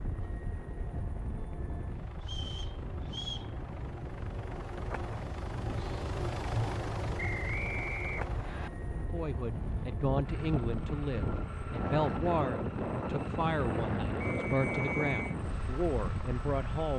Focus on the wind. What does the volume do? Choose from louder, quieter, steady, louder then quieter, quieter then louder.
louder.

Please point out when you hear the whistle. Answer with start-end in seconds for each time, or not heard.
2.2-3.5, 7.2-8.7, 14.2-15.3.